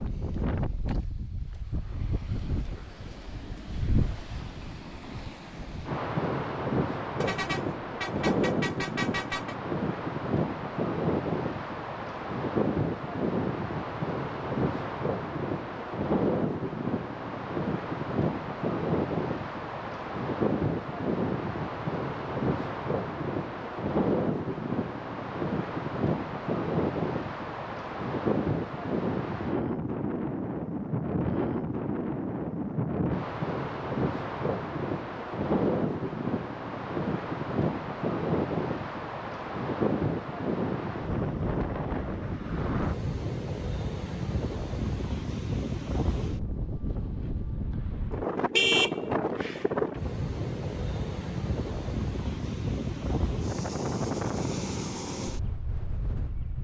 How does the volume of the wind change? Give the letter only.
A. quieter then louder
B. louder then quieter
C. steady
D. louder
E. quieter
C.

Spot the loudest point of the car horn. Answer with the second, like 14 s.
49 s.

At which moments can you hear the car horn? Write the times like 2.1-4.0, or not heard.
7.2-9.6, 48.5-49.8.